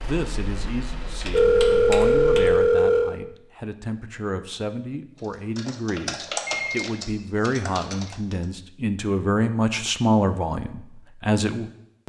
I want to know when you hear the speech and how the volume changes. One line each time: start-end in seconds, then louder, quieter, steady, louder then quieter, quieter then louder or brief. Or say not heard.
0.0-12.0 louder.